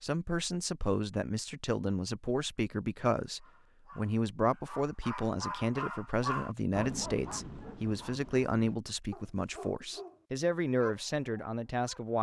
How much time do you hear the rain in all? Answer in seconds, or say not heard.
not heard.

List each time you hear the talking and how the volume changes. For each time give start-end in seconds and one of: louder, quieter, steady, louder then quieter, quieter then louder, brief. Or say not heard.
0.0-12.1 steady.